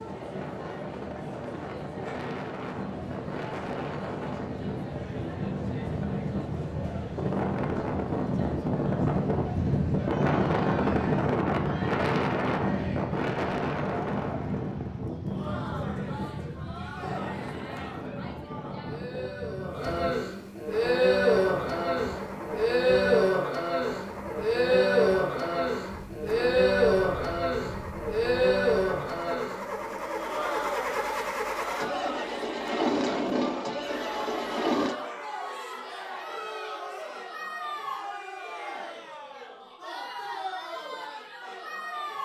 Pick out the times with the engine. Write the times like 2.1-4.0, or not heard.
20.6-35.0.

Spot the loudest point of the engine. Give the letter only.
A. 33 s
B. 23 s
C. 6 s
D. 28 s
A.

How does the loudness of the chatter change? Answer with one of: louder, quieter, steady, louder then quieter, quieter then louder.
louder then quieter.